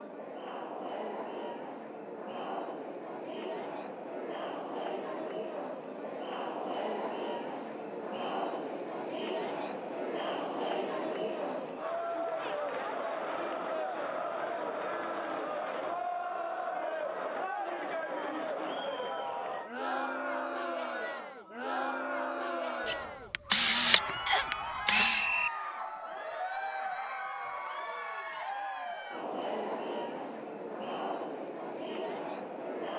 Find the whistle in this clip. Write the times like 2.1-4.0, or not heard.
24.2-25.5.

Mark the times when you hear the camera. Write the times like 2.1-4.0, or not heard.
22.9-25.2.